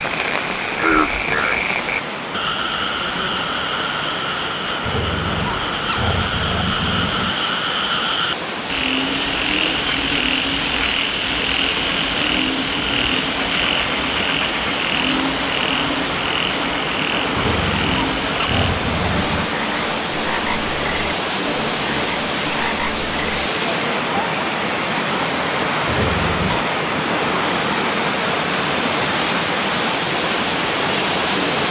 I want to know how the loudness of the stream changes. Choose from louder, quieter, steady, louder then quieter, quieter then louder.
louder.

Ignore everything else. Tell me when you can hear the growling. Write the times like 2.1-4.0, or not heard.
4.8-7.3, 17.3-19.5, 25.9-26.6.